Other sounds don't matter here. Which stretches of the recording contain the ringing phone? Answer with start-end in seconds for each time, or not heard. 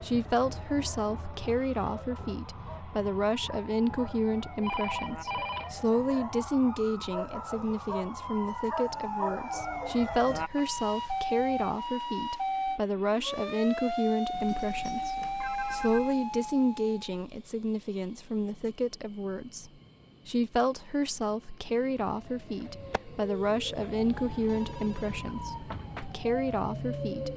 4.6-5.8, 14.3-16.1, 24.4-25.2.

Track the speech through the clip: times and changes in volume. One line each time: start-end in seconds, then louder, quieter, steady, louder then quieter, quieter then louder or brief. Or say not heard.
0.0-27.3 steady.